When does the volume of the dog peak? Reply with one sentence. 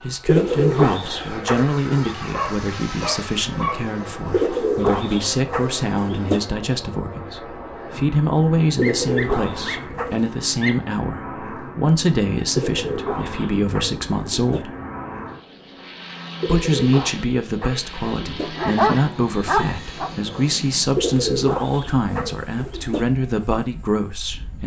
The loudest moment of the dog is at 19 seconds.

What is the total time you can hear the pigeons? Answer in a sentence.
You can hear the pigeons for 12 seconds altogether.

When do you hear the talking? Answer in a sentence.
The talking can be heard from 0.0 to 14.7 s and from 16.4 to 24.6 s.